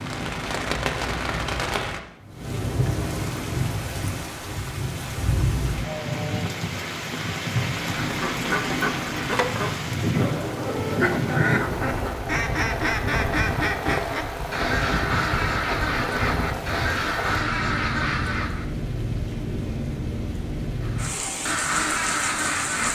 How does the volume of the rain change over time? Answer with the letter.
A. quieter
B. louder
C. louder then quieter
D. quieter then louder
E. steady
E.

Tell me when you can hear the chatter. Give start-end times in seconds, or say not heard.
not heard.